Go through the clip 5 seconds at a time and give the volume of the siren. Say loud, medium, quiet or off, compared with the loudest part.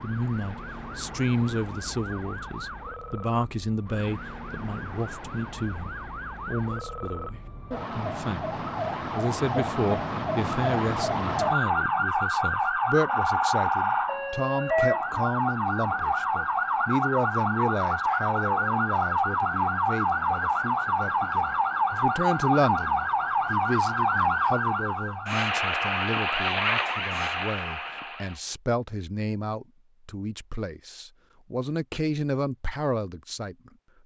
quiet, medium, loud, loud, loud, loud, off.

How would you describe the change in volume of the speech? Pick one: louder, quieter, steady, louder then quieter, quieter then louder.
steady.